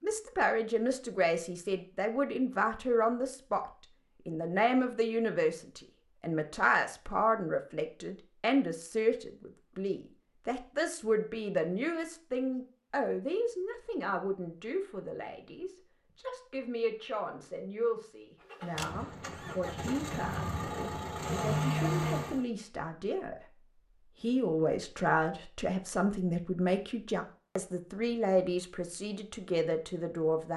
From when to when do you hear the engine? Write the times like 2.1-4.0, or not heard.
18.5-22.4.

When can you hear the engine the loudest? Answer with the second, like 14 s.
22 s.